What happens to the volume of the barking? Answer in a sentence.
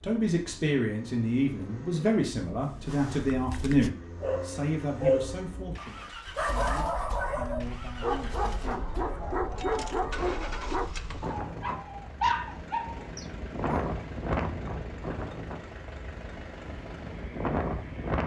The loudness of the barking stays about the same.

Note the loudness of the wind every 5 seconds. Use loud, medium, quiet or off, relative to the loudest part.
off, quiet, loud, loud.